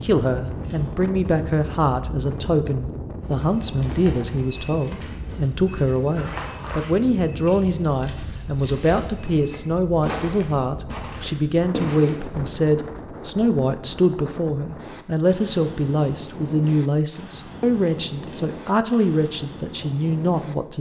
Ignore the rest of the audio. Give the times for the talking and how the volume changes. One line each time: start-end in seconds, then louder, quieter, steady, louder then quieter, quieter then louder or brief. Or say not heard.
0.0-20.7 steady.